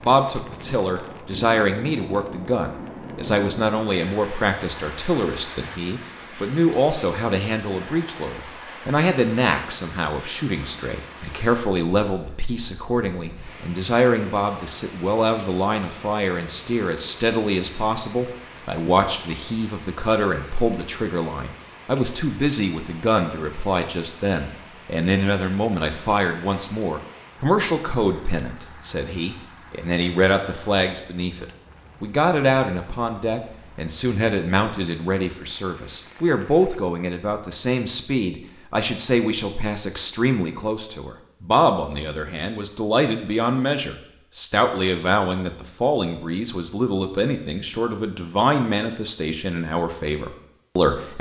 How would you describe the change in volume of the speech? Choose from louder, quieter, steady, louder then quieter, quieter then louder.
steady.